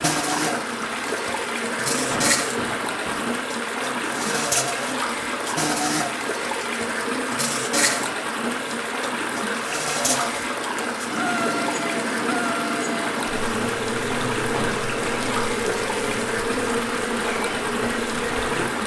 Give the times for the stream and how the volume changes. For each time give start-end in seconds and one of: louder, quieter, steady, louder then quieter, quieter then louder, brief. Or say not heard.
0.0-18.8 steady.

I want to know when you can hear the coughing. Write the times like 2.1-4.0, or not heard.
2.0-3.2, 14.5-15.2.